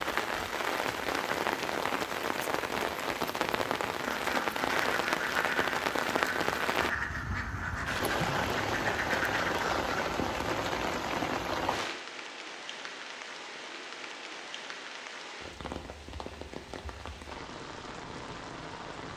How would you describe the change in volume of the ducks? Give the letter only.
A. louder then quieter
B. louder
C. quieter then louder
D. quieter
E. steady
E.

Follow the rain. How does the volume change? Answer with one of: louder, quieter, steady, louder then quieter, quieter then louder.
quieter.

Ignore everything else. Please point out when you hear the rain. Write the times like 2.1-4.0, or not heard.
0.0-19.1.